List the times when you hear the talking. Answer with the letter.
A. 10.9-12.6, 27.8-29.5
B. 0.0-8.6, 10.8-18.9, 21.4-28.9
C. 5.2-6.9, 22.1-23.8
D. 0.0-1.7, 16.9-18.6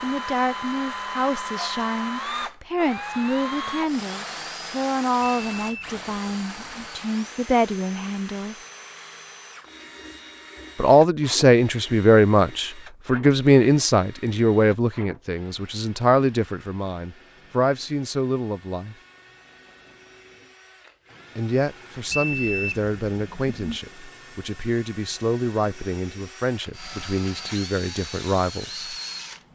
B.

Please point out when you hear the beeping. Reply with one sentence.
You can hear the beeping from 5.2 to 6.9 s and from 22.1 to 23.8 s.